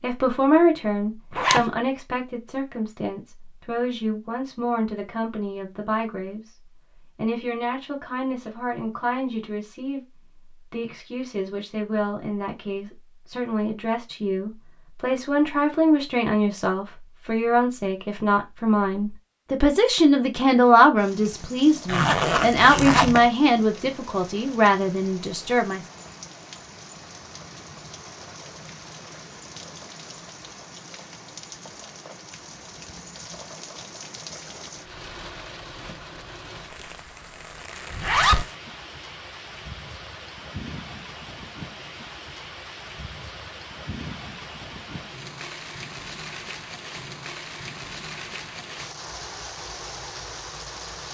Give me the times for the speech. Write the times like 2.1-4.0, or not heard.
0.0-25.8.